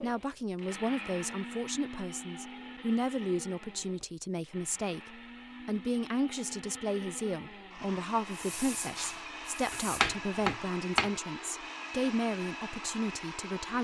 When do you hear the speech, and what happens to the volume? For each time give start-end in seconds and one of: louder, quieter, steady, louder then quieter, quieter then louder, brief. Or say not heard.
0.0-13.7 steady.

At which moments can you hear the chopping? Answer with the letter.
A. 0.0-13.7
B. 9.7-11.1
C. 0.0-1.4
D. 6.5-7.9
B.